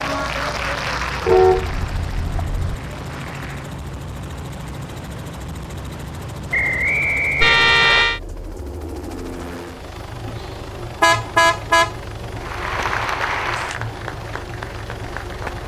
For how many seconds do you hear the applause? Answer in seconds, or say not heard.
7 s.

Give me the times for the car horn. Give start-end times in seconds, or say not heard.
1.2-2.6, 7.4-8.2, 11.0-11.9.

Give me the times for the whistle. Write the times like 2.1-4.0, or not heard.
6.5-8.1.